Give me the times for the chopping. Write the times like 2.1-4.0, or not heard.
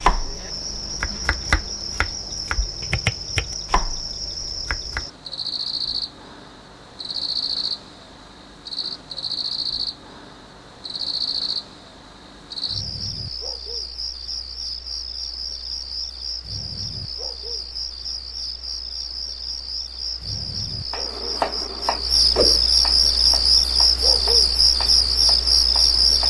0.0-5.0, 20.9-26.2.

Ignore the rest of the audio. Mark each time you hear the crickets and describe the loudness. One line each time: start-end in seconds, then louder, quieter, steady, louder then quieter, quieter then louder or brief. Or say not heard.
0.0-26.2 louder.